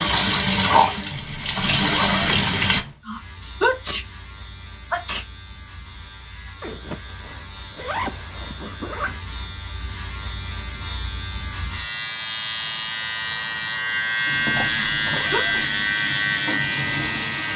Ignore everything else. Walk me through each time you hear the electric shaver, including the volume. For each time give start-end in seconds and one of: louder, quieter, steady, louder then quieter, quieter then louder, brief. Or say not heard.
3.0-17.5 louder.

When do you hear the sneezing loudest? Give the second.
4 s.